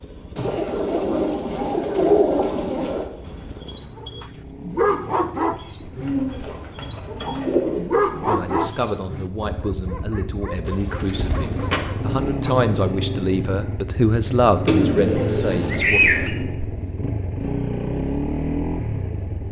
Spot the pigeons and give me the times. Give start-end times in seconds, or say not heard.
0.3-3.1, 6.0-7.9, 10.7-12.3, 14.7-16.4.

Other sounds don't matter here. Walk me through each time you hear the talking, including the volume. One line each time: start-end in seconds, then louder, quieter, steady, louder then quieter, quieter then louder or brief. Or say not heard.
8.2-16.1 louder.